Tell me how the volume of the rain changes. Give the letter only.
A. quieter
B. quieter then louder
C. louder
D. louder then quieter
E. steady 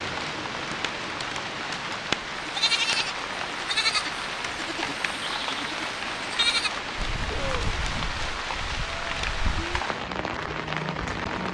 E.